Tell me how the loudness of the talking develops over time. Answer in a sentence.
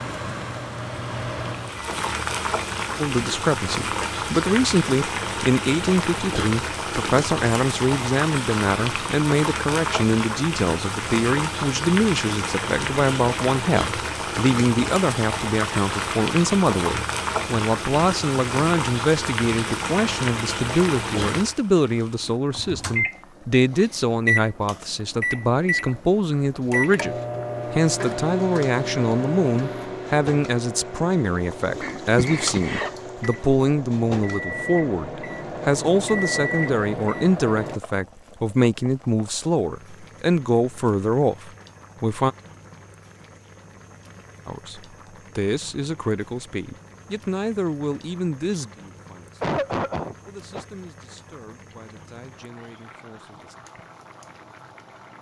The volume of the talking goes down.